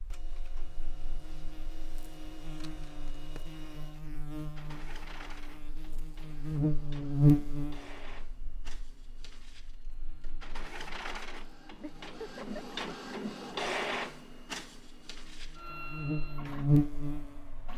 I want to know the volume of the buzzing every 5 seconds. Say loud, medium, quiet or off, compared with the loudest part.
quiet, loud, quiet, loud.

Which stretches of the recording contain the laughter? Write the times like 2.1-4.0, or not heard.
11.8-12.8.